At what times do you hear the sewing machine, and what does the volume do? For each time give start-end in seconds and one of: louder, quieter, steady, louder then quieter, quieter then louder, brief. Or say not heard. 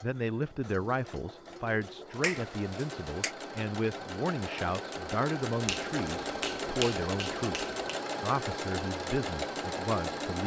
0.0-10.4 louder.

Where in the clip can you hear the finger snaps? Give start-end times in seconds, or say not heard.
2.2-3.4, 5.7-8.0.